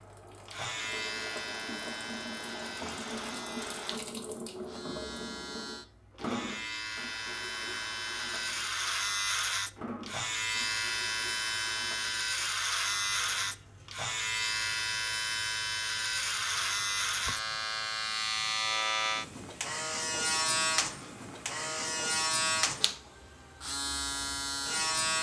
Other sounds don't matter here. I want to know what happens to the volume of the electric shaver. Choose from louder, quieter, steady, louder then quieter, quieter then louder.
louder.